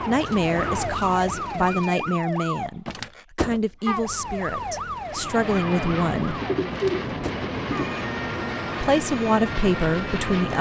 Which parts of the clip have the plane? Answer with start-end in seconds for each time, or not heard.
0.0-1.6, 5.0-10.5.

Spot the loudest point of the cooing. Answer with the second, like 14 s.
7 s.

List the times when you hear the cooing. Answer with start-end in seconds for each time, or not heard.
0.1-2.2, 6.2-8.0.